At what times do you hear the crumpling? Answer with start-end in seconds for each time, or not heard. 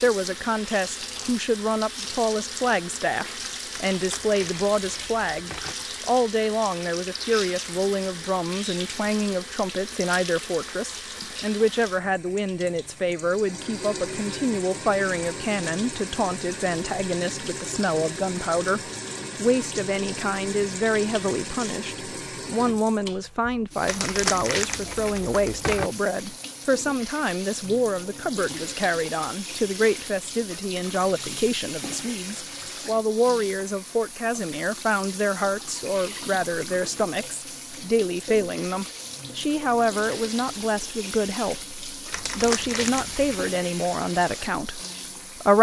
3.8-5.8, 23.9-25.9, 42.1-43.4.